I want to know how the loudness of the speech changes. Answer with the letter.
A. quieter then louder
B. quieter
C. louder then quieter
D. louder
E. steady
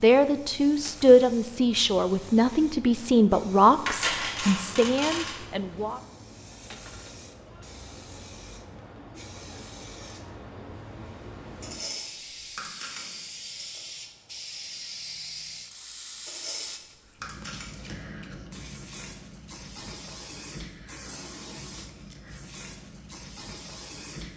B.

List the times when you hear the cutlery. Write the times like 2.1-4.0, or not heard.
3.9-5.4, 11.6-13.8, 16.2-17.7.